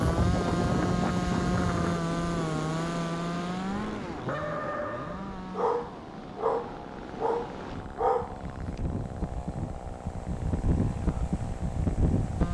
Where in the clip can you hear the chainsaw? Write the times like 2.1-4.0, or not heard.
0.0-12.4.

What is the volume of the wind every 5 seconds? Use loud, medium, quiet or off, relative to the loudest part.
loud, medium, loud.